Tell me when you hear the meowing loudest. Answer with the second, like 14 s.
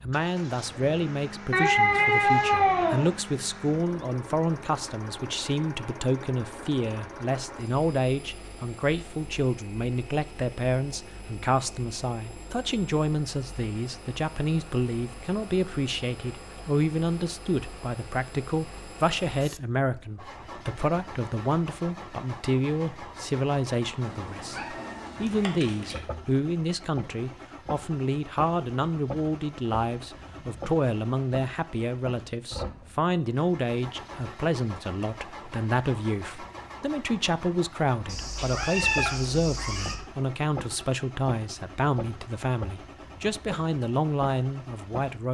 2 s.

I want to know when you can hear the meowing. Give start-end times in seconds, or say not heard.
1.5-3.1, 24.0-26.0, 38.0-40.0.